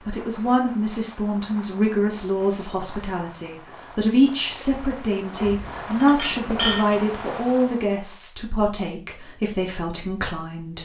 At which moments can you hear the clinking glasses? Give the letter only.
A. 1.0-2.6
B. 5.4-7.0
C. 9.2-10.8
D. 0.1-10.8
B.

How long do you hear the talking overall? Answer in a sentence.
The talking can be heard for 11 seconds in total.